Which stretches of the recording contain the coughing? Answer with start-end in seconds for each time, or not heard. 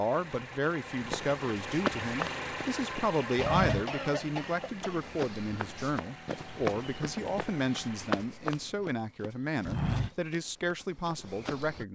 3.4-5.0.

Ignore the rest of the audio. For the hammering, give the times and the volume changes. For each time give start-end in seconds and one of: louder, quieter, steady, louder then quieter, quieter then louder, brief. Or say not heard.
not heard.